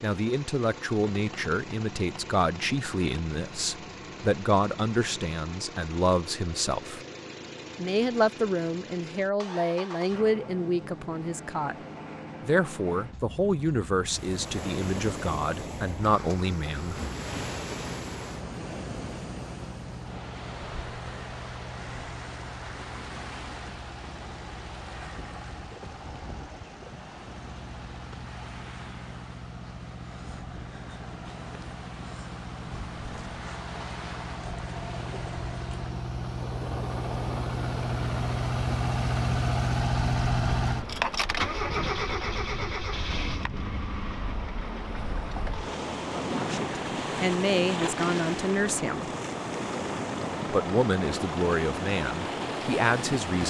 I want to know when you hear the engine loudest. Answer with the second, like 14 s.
40 s.